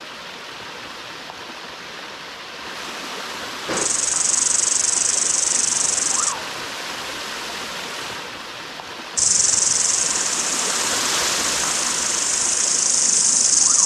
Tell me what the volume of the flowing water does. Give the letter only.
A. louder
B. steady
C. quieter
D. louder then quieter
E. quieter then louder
A.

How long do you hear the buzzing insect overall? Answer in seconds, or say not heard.
7 s.